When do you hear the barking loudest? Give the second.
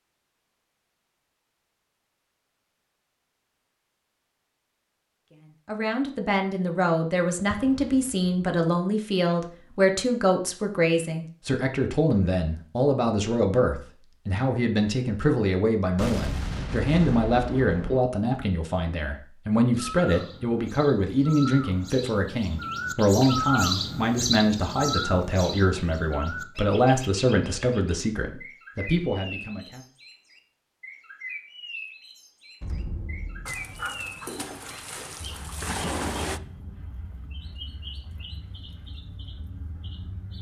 36 s.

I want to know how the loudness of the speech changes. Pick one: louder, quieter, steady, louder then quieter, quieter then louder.
steady.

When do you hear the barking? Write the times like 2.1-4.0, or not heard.
33.5-36.4.